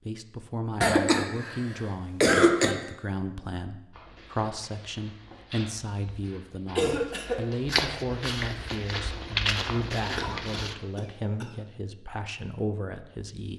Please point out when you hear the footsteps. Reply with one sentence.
You can hear the footsteps from 3.9 to 10.8 s.